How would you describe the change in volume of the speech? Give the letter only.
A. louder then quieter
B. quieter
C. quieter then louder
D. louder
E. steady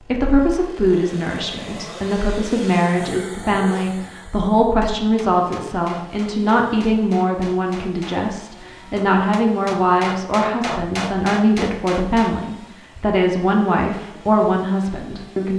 E.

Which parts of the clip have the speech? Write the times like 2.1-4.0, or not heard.
0.0-15.5.